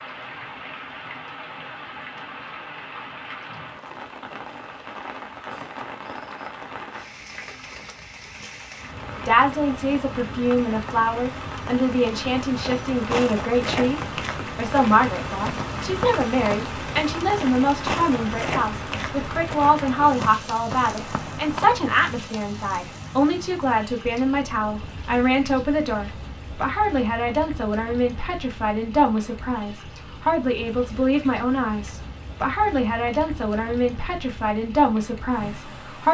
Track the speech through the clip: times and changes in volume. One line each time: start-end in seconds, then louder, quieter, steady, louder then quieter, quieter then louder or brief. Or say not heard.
9.2-36.0 steady.